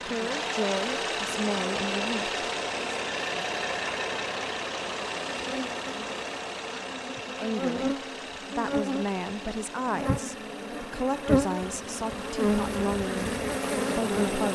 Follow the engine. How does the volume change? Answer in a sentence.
The loudness of the engine goes down.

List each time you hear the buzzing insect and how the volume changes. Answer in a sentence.
You can hear the buzzing insect from 0.0 to 14.4 s, getting louder.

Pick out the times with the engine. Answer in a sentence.
The engine can be heard from 0.0 to 14.4 s.